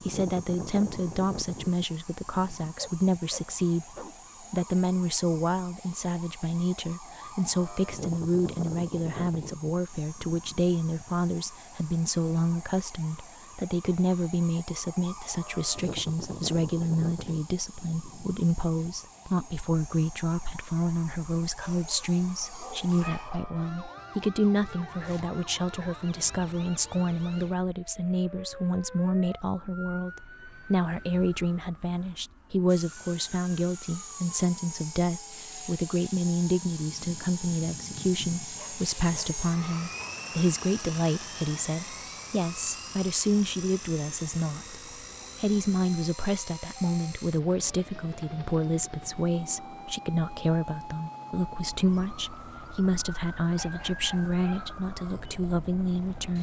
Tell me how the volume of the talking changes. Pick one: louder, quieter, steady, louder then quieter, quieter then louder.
steady.